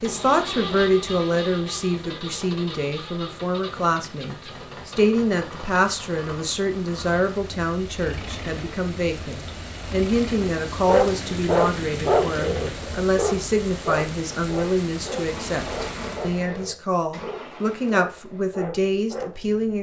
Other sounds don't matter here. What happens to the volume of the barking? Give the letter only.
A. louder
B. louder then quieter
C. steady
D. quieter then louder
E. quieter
E.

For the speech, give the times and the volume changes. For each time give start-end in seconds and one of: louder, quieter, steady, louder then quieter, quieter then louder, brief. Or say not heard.
0.0-19.7 steady.